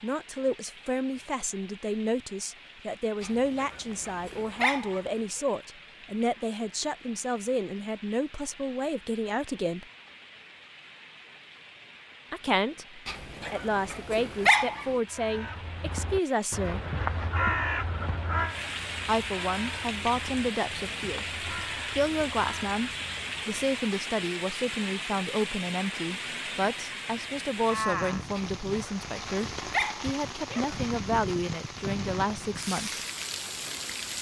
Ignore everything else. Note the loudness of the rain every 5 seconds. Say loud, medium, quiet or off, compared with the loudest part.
quiet, quiet, quiet, medium, loud, loud, loud.